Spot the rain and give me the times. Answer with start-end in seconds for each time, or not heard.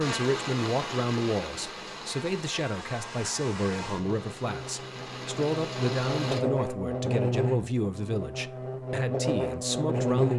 0.0-6.4.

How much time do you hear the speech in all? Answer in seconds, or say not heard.
10 s.